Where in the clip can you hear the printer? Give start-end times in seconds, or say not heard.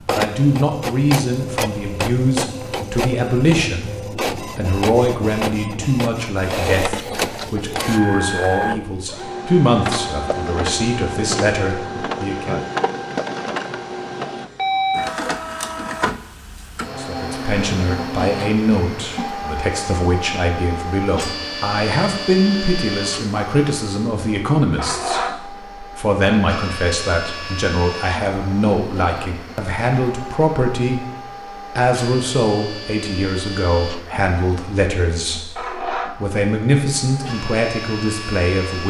0.0-38.8.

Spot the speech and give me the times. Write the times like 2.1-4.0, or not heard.
0.1-12.7, 16.9-31.1, 31.8-38.8.